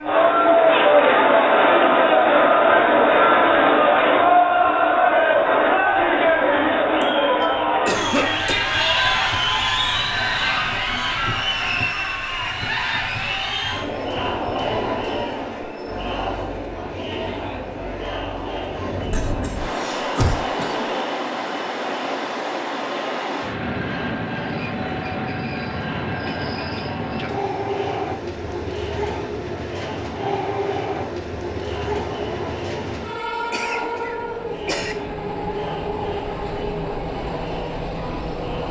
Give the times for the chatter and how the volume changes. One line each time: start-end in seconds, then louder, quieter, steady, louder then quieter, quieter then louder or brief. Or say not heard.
0.0-38.6 quieter.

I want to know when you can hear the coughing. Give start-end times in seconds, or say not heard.
7.8-8.6, 19.1-20.9, 33.5-35.0.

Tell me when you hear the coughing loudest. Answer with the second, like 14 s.
8 s.